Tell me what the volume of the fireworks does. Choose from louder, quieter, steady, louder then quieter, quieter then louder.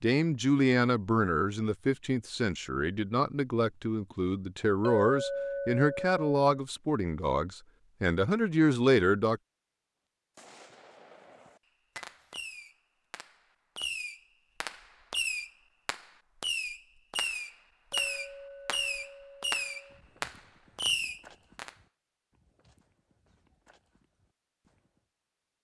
louder.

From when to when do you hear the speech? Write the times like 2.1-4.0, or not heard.
0.0-9.4.